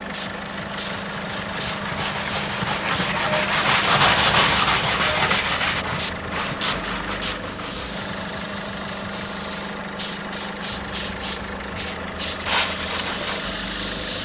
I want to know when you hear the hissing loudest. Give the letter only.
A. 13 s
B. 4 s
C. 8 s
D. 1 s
A.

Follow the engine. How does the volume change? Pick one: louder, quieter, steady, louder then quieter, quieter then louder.
steady.